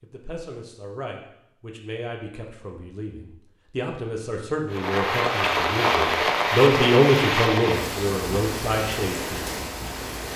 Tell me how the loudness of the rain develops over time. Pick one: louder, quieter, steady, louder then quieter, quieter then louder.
quieter.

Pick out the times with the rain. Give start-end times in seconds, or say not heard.
4.7-10.3.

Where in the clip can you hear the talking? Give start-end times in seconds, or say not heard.
0.0-9.5.